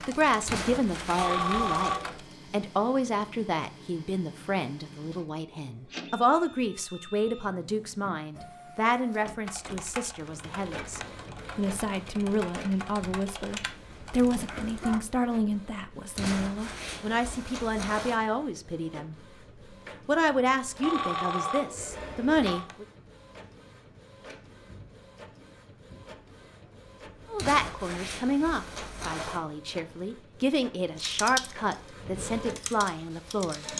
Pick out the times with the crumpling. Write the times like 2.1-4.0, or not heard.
0.5-1.9, 16.1-18.1, 27.4-29.4.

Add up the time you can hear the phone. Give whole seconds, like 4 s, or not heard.
3 s.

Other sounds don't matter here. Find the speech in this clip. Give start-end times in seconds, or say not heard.
0.1-19.1, 20.1-22.9, 27.3-33.6.